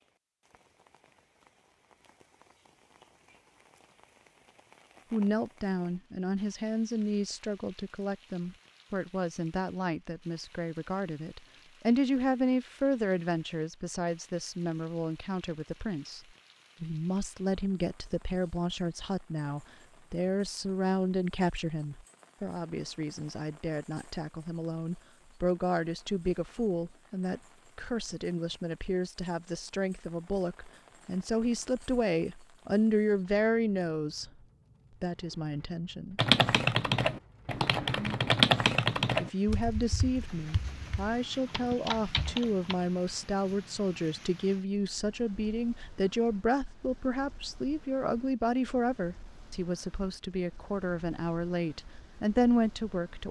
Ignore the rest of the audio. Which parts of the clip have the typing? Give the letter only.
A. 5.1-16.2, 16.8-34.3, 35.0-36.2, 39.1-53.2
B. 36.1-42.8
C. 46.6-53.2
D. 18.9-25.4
B.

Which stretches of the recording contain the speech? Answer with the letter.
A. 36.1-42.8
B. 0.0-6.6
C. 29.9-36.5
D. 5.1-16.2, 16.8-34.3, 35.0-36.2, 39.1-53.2
D.